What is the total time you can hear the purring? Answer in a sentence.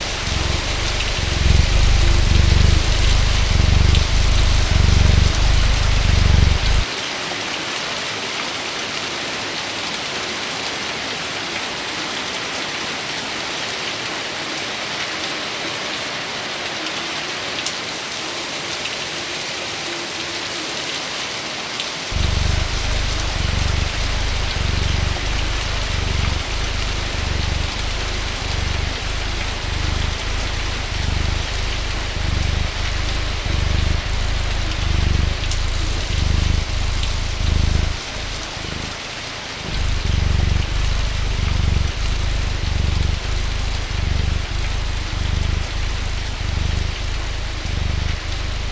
The purring can be heard for 33 seconds in total.